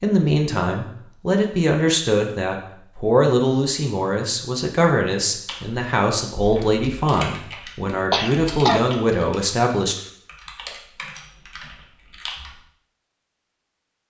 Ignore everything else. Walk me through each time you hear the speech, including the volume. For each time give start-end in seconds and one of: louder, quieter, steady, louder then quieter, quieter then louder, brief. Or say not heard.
0.0-9.9 steady.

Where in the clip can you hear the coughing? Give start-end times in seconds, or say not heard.
8.1-9.0.